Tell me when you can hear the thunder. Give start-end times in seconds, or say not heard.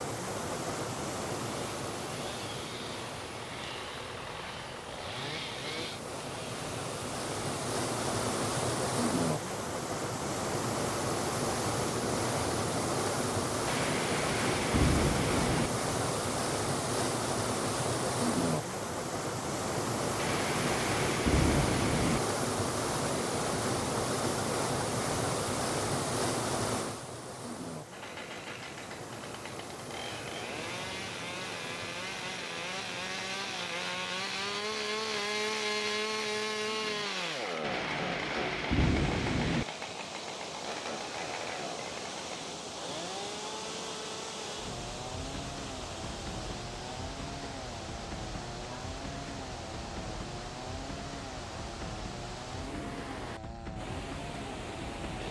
13.7-15.7, 20.1-22.2, 37.6-39.6.